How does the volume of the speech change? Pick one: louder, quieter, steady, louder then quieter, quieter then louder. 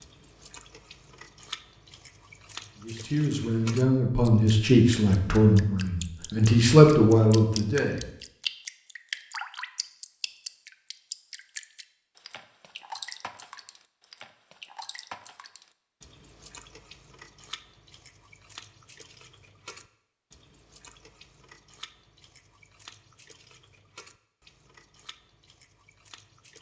louder.